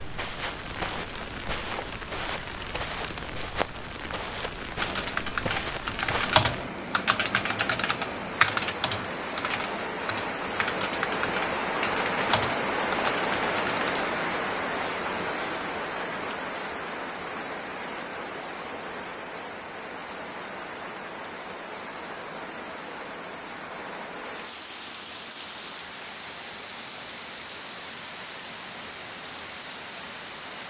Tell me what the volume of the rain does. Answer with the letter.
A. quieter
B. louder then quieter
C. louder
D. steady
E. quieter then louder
B.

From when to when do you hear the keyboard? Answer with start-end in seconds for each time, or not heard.
4.8-14.1.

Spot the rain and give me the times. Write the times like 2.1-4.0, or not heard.
0.0-30.6.